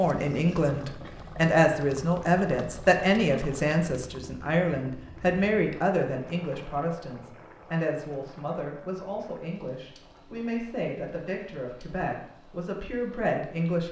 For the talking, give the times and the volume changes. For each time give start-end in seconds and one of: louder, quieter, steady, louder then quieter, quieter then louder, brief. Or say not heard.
0.0-13.8 quieter.